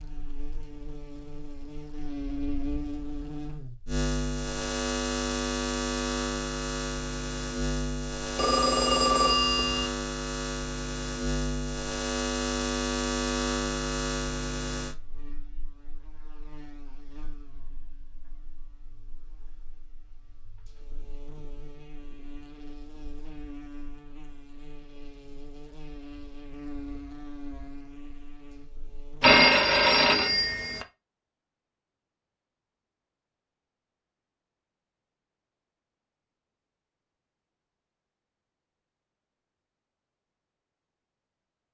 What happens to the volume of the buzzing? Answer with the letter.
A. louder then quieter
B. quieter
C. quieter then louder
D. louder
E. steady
C.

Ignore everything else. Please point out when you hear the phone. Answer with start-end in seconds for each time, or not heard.
8.3-9.9, 29.2-30.9.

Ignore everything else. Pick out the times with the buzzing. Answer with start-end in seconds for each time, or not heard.
0.0-29.3.